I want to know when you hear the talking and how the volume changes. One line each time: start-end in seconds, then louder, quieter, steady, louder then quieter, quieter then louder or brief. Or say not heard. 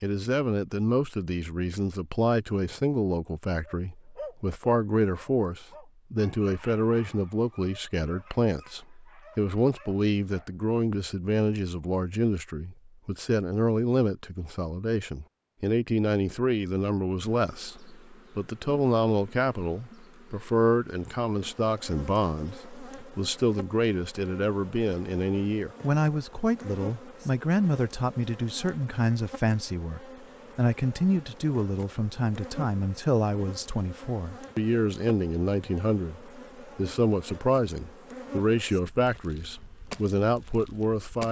0.0-41.2 steady.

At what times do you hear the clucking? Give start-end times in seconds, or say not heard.
not heard.